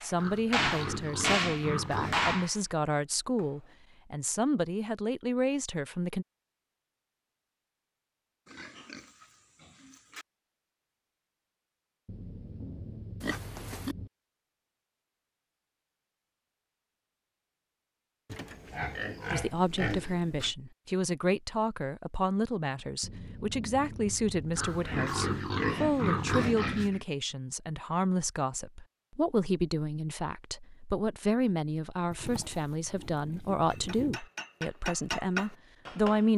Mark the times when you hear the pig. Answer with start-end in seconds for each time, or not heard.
0.1-2.5, 8.4-10.2, 13.2-13.9, 18.3-20.6, 24.6-27.1, 32.1-34.2.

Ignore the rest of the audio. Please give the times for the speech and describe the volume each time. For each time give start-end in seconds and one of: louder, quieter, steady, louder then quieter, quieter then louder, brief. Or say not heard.
0.0-6.2 steady
19.3-36.3 steady.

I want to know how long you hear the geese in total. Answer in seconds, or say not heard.
not heard.